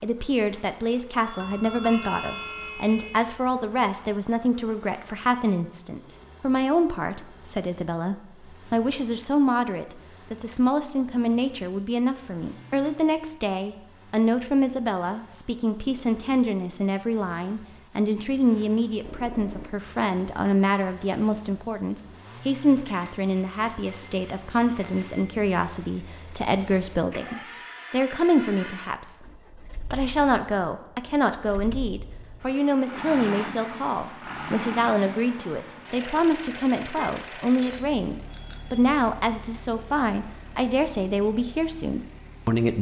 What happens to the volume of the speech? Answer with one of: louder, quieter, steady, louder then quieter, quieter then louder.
steady.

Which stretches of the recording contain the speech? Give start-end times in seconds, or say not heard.
0.0-29.2, 29.9-42.7.